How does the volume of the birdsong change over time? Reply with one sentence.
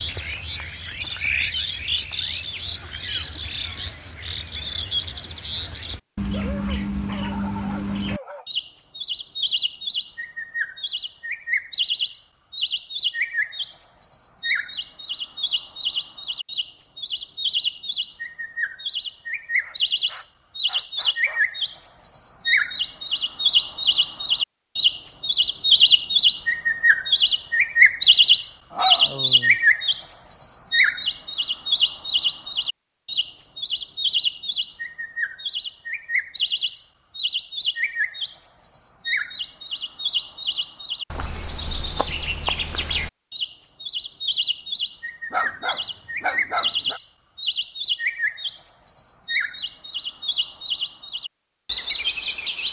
The loudness of the birdsong goes up, then down.